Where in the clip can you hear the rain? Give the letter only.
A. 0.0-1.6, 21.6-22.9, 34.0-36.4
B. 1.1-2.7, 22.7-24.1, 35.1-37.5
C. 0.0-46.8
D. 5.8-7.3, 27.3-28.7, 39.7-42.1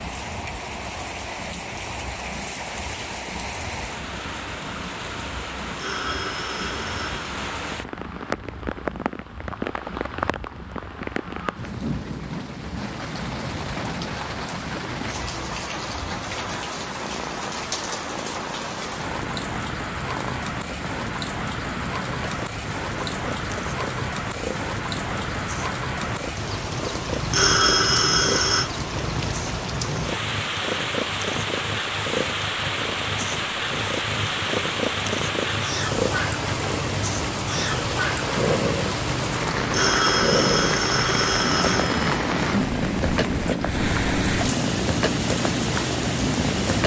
C.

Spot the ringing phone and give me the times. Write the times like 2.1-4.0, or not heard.
5.8-7.3, 27.3-28.7, 39.7-42.1.